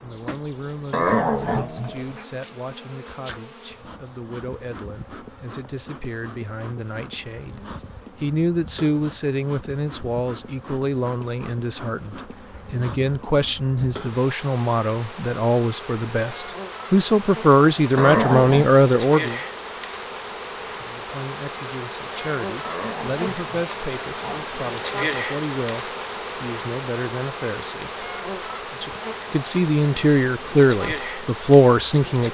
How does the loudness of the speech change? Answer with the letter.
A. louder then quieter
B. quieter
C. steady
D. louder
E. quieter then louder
D.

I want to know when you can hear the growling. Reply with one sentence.
The growling can be heard from 0.9 to 2.2 s, from 17.9 to 18.7 s and from 22.6 to 24.5 s.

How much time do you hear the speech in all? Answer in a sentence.
The speech can be heard for 30 seconds in total.